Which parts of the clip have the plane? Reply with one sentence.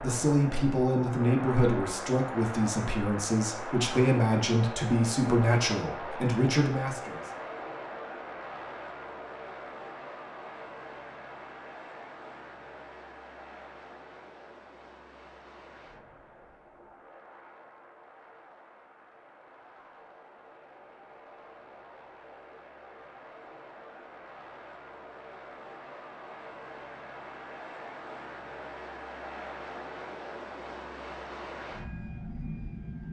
You can hear the plane from 0.0 to 33.0 s.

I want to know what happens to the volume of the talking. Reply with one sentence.
The volume of the talking stays about the same.